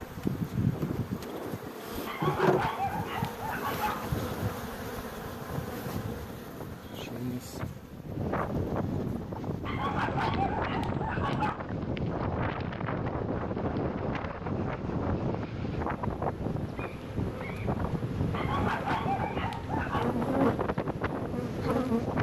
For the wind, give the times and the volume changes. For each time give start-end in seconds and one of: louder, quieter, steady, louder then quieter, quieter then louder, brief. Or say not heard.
0.0-22.1 louder.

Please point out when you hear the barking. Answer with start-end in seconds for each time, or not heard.
2.0-4.0, 9.7-11.6, 18.3-20.1.